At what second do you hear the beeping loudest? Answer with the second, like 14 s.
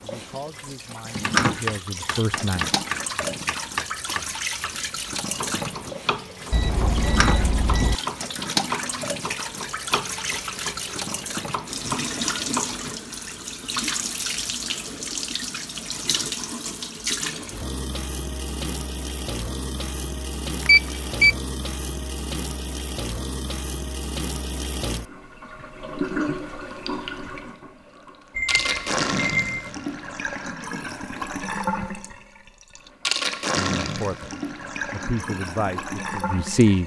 21 s.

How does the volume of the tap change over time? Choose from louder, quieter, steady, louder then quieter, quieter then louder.
steady.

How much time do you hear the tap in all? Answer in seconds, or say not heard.
37 s.